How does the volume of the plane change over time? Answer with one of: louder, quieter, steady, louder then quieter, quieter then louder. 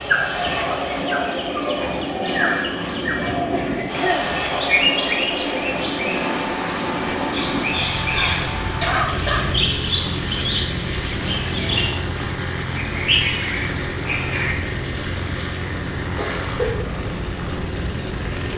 steady.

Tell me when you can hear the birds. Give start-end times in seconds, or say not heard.
0.0-14.6.